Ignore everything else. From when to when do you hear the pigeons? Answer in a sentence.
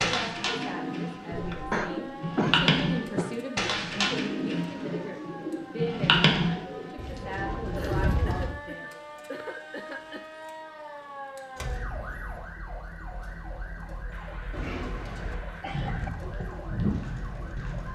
The pigeons can be heard from 0.0 to 8.5 s and from 14.5 to 17.9 s.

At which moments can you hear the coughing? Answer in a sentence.
The coughing can be heard from 1.7 to 3.5 s, from 7.8 to 10.3 s and from 14.1 to 16.1 s.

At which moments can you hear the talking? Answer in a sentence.
You can hear the talking from 0.0 to 9.1 s.